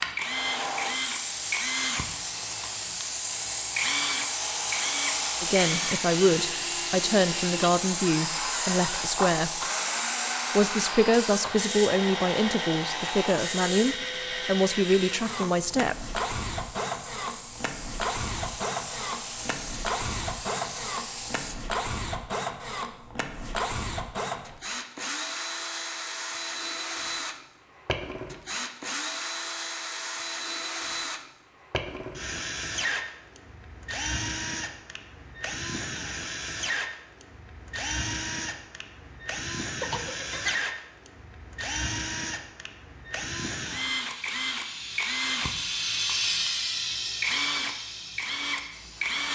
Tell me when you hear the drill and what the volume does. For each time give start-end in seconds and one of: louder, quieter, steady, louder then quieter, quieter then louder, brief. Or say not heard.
0.1-49.3 steady.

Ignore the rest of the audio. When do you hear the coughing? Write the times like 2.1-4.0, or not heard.
39.8-40.7.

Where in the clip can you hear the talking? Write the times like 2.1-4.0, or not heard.
5.4-9.6, 10.6-15.9.